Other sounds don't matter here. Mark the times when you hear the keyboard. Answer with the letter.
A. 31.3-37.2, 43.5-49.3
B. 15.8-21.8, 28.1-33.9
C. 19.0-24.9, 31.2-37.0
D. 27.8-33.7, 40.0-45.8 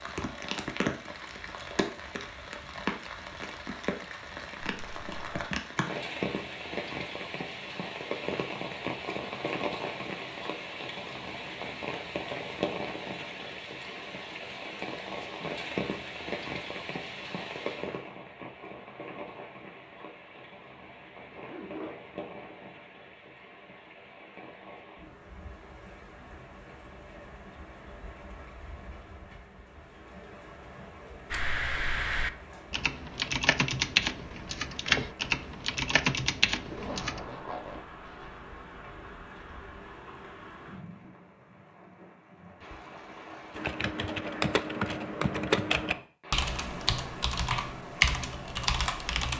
A.